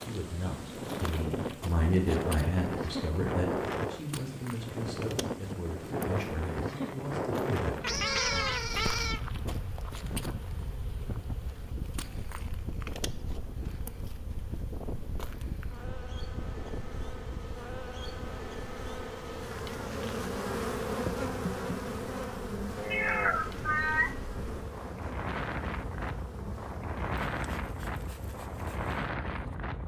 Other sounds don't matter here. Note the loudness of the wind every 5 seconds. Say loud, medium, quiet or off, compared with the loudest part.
loud, loud, medium, medium, medium, loud.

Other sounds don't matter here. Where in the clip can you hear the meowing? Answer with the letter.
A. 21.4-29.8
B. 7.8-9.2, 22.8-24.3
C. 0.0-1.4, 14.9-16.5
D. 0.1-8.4
B.